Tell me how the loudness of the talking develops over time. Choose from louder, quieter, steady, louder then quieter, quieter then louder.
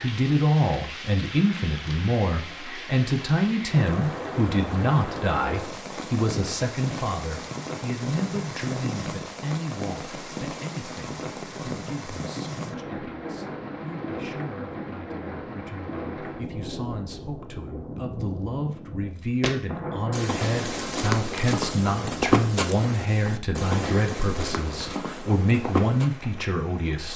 quieter then louder.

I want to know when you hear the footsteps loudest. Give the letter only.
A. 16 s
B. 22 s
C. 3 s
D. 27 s
B.